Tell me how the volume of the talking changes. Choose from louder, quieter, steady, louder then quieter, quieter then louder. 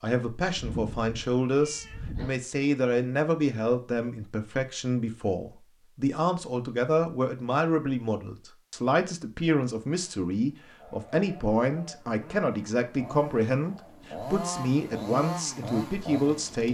steady.